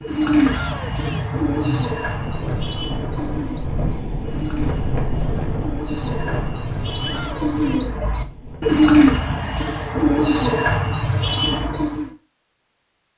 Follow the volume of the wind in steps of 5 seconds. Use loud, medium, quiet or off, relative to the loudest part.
loud, loud, off.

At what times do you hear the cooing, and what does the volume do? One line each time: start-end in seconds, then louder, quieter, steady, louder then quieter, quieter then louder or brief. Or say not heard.
0.0-12.1 quieter then louder.